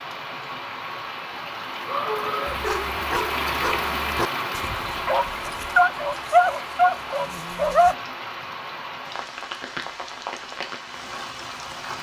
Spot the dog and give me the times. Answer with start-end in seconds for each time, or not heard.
2.5-8.0.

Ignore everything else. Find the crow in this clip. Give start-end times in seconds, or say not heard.
not heard.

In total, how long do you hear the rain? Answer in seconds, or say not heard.
12 s.